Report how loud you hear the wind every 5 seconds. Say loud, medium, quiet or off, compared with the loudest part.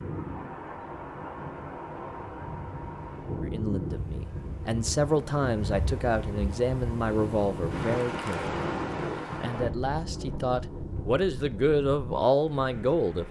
loud, loud, medium.